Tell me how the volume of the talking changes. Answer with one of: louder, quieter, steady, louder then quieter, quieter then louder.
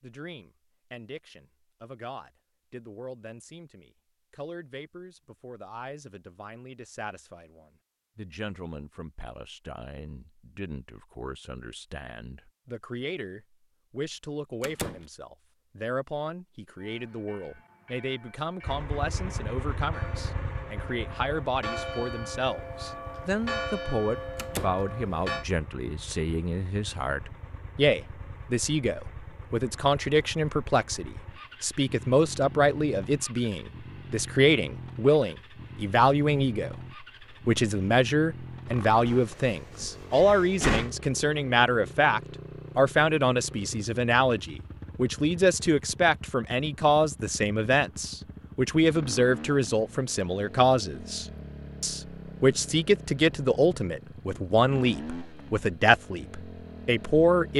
louder.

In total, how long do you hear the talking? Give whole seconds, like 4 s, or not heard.
57 s.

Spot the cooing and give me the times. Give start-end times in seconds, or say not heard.
not heard.